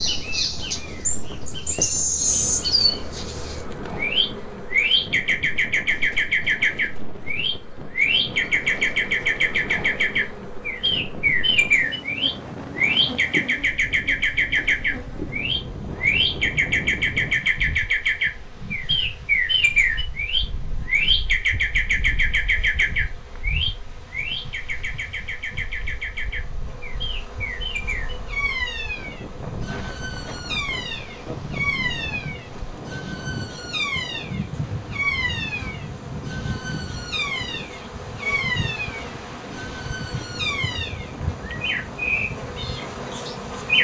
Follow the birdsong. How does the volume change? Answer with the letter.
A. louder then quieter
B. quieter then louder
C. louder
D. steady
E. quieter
E.